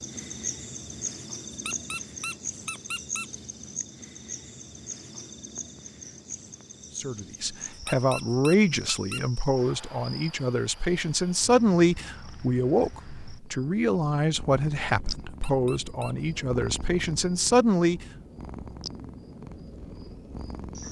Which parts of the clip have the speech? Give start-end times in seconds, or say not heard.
7.0-18.1.